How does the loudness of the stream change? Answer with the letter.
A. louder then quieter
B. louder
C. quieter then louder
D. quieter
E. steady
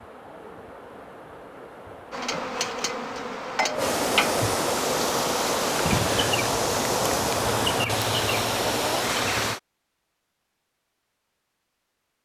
B.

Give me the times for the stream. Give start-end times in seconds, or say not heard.
0.0-9.6.